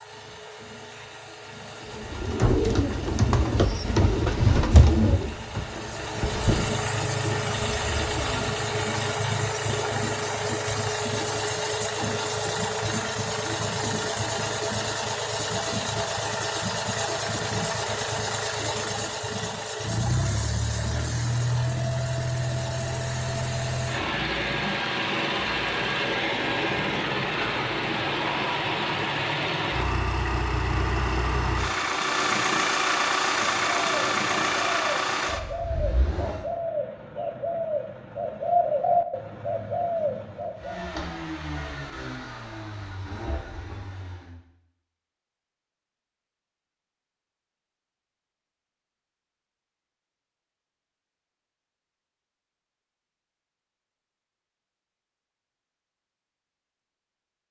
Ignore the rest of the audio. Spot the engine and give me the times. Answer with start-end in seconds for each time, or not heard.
0.0-36.5, 40.5-44.4.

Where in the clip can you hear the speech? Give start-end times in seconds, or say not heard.
not heard.